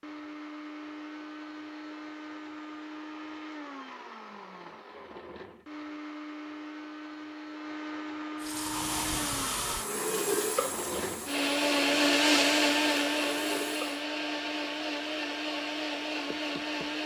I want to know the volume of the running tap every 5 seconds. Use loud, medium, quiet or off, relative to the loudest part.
off, loud, loud, off.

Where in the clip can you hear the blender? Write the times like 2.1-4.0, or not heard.
0.0-17.0.